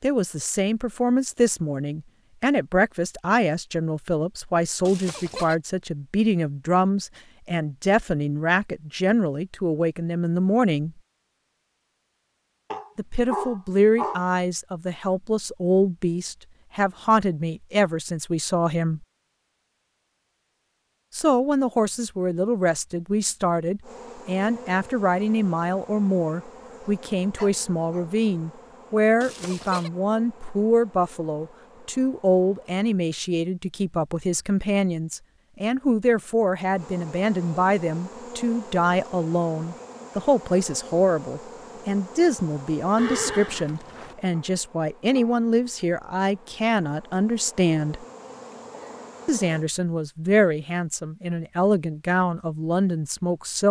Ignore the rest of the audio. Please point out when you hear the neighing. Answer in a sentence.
The neighing can be heard from 4.8 to 5.5 s, from 29.2 to 29.9 s and from 43.0 to 44.1 s.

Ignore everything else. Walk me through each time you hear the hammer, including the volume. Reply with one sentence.
The hammer can't be heard in this clip.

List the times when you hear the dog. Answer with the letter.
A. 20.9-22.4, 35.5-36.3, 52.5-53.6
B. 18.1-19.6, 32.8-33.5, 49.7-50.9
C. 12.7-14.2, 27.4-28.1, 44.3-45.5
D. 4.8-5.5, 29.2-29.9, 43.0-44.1
C.